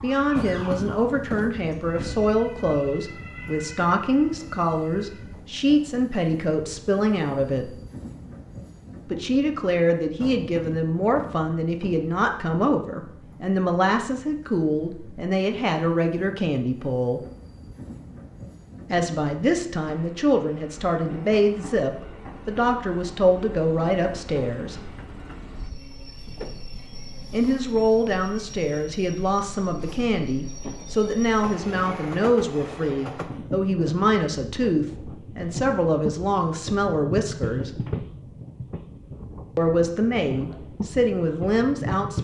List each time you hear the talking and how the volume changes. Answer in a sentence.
The talking can be heard from 0.0 to 7.8 s, at a steady volume; from 9.1 to 17.2 s, at a steady volume; from 18.9 to 24.9 s, at a steady volume; from 27.3 to 37.7 s, at a steady volume; and briefly from 39.5 to 42.2 s.